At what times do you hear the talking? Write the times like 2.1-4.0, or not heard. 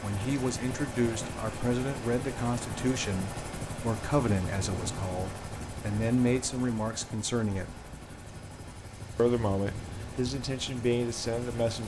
0.0-7.8, 9.2-11.8.